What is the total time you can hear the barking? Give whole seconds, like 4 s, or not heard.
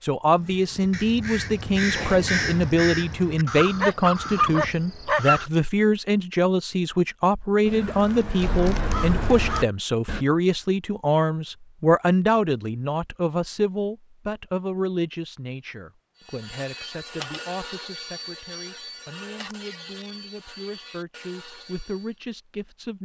2 s.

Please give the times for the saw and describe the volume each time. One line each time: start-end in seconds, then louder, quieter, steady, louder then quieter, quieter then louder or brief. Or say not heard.
16.1-22.2 quieter.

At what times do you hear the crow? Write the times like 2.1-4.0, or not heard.
0.3-5.5, 7.7-10.2.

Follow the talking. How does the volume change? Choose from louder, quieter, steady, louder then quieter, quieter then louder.
quieter.